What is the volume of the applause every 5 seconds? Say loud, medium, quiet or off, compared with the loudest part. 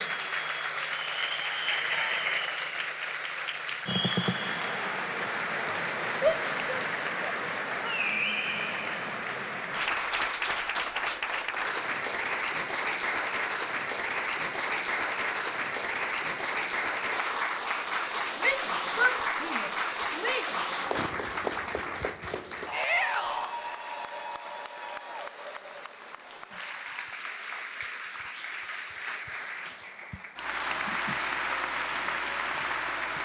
loud, loud, loud, loud, loud, medium, loud.